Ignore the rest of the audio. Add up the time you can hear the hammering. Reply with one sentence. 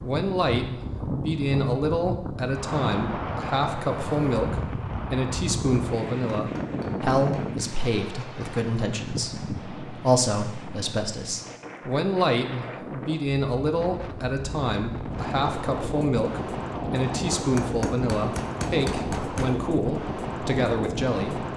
You can hear the hammering for 3 seconds altogether.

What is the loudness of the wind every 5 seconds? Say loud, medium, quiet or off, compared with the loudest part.
loud, loud, medium, loud, loud.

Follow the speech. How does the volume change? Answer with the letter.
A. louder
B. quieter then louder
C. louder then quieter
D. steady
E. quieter
D.